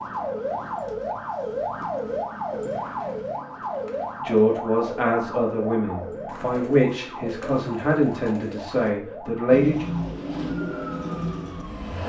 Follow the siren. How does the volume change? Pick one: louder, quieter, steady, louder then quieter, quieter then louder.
quieter.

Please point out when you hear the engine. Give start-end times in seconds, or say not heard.
0.0-1.9, 9.4-12.0.